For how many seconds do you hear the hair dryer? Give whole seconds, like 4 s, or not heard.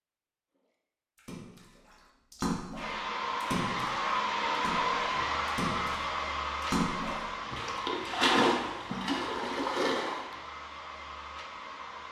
9 s.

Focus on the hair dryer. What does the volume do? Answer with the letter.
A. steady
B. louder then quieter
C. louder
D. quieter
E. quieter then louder
D.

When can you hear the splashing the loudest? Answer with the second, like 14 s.
8 s.